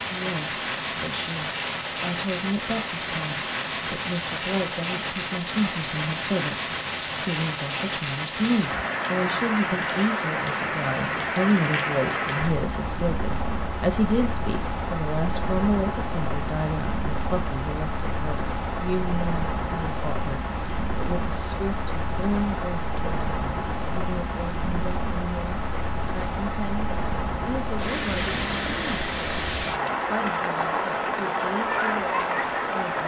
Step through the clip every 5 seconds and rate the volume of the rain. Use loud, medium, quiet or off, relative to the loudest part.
loud, loud, loud, medium, medium, loud, loud.